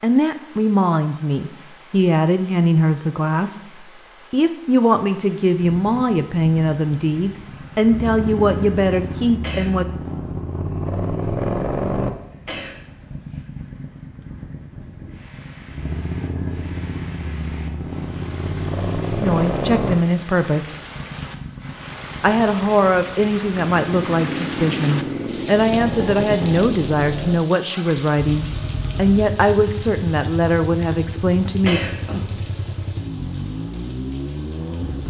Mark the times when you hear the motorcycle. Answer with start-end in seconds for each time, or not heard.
5.6-35.0.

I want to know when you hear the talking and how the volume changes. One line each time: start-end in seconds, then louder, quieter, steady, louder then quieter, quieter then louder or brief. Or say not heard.
0.0-9.8 steady
19.2-20.7 brief
22.2-31.8 steady.